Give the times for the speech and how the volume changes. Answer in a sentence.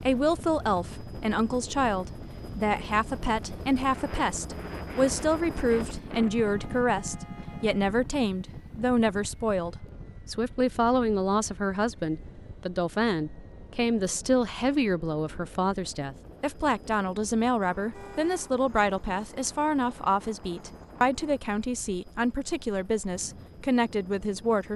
The speech can be heard from 0.1 to 24.7 s, at a steady volume.